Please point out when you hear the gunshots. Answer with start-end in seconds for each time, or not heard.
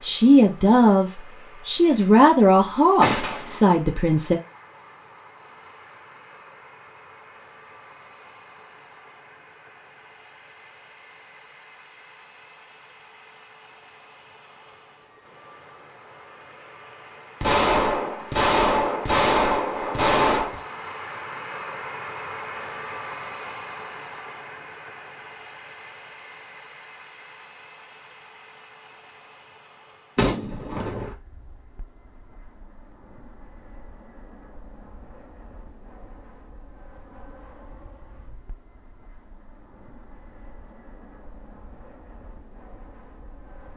3.0-3.6, 17.4-20.6, 30.1-31.1.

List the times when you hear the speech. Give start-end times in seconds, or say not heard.
0.0-4.4.